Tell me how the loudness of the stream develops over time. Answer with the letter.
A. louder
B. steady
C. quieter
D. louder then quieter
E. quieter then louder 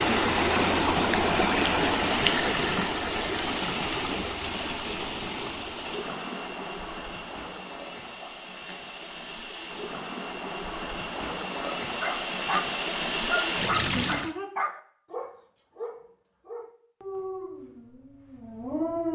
E.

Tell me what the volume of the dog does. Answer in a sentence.
The volume of the dog goes down.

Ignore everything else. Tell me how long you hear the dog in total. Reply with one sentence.
The dog can be heard for 7 seconds in total.